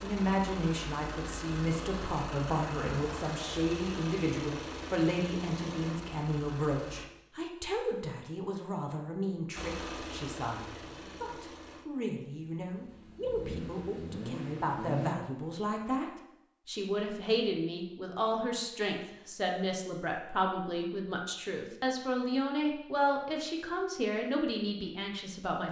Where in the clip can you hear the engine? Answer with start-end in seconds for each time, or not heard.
0.0-7.0, 9.6-15.2.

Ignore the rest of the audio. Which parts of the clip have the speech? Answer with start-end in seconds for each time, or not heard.
0.0-25.6.